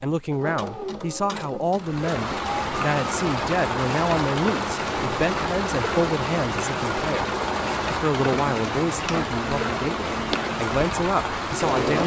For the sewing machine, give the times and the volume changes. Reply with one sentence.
You can hear the sewing machine from 0.1 to 12.0 s, at a steady volume.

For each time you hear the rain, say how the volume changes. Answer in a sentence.
You can hear the rain from 1.8 to 12.0 s, at a steady volume.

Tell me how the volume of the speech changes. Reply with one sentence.
The volume of the speech stays about the same.